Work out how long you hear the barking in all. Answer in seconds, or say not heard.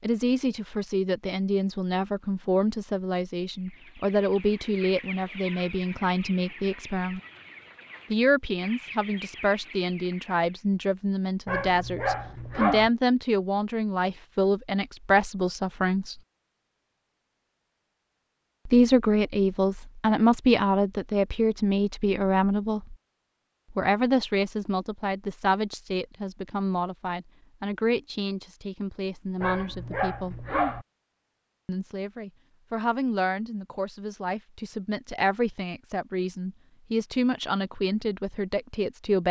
3 s.